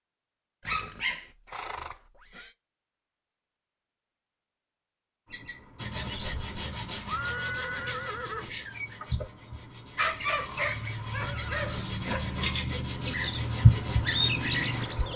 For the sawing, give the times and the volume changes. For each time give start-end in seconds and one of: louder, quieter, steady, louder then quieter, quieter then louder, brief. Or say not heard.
5.8-14.8 quieter then louder.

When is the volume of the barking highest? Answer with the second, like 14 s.
10 s.